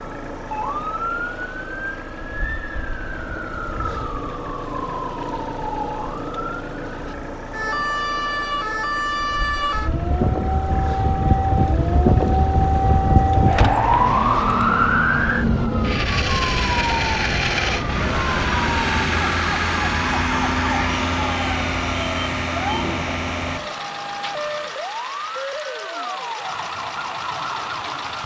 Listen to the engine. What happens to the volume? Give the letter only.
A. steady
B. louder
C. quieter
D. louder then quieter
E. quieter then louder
D.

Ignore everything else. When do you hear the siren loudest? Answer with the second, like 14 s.
14 s.